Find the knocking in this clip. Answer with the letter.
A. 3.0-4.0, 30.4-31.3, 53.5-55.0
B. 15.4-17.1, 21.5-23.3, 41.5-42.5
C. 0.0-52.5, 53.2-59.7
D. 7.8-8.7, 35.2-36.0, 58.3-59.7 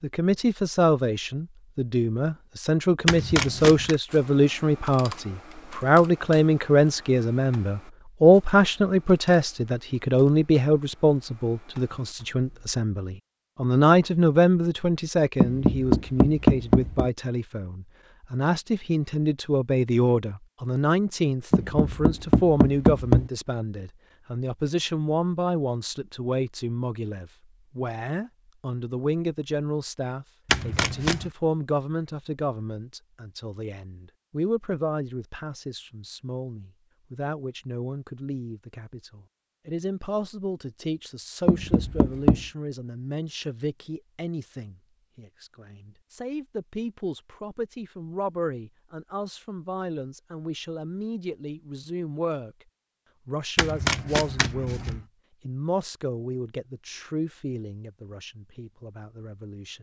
B.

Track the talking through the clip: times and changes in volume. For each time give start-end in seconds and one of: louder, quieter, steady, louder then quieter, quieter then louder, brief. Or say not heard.
0.0-52.5 quieter
53.2-59.7 quieter.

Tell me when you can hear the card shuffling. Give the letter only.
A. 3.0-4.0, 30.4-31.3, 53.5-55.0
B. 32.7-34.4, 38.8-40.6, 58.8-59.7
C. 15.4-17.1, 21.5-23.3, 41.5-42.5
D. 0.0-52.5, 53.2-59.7
A.